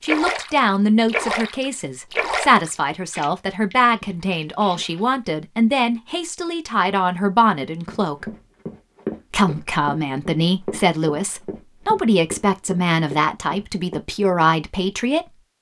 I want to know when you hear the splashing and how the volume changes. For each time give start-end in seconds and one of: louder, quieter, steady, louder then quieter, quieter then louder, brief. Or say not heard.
0.0-5.0 quieter.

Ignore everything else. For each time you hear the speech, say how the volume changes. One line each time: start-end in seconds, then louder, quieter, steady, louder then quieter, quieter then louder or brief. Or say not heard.
0.0-8.3 steady
9.3-15.3 steady.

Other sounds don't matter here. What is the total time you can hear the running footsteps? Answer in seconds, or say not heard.
6 s.